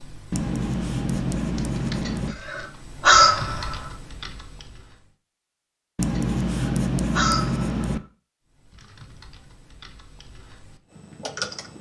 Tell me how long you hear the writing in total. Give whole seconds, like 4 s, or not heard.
4 s.